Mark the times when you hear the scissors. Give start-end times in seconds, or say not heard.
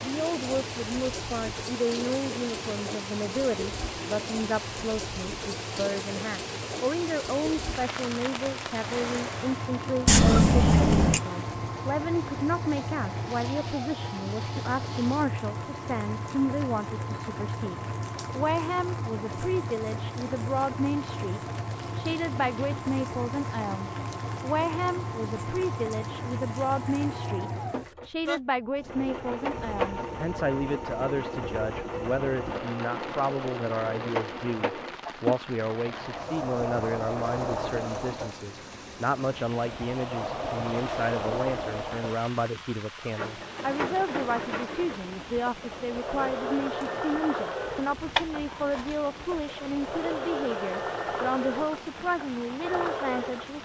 10.1-11.2, 48.1-49.0.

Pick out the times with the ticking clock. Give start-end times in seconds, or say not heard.
not heard.